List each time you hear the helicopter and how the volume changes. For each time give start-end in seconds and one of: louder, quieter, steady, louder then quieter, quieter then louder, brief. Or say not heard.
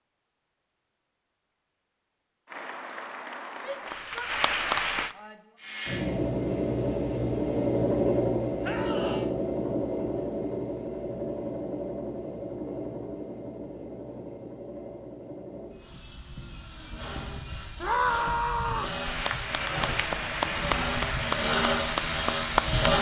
5.5-22.9 quieter then louder.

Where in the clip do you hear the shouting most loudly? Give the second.
18 s.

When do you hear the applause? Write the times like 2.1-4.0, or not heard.
2.5-5.2, 19.0-22.9.